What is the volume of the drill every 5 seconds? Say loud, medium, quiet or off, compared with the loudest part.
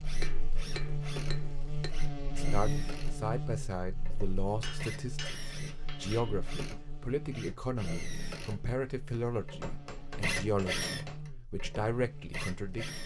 medium, medium, loud.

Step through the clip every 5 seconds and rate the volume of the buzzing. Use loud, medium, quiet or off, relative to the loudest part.
loud, medium, medium.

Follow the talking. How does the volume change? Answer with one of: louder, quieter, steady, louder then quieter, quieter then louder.
steady.